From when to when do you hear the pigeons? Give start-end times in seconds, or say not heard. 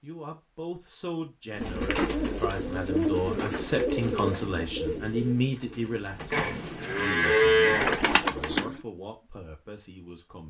1.6-8.8.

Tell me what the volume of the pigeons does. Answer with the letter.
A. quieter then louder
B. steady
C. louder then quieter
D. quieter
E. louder
A.